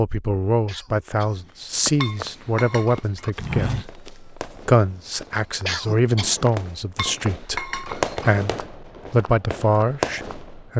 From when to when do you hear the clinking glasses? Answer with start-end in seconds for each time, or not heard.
2.0-3.3, 7.0-8.3.